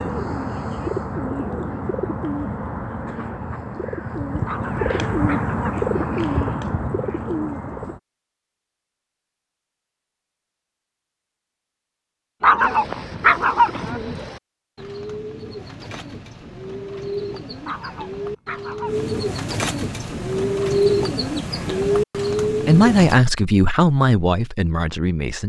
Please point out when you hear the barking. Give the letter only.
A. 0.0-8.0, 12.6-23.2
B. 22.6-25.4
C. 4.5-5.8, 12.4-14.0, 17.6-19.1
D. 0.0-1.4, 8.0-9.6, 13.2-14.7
C.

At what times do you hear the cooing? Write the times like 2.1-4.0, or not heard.
0.0-8.0, 12.6-23.2.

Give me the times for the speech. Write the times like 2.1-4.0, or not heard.
22.6-25.4.